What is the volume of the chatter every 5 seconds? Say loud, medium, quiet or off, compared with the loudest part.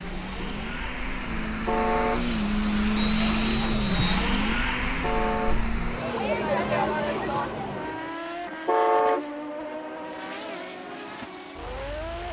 medium, loud, off.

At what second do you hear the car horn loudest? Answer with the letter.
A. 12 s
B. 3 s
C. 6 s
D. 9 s
D.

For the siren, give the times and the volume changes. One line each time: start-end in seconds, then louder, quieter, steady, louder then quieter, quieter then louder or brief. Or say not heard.
not heard.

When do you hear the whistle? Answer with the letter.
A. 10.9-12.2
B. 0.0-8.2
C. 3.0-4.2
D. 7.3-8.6
C.